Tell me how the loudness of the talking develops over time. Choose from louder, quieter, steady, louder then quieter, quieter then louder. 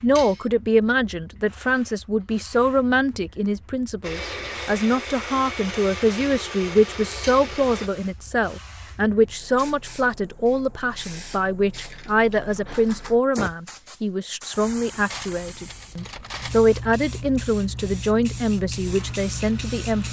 steady.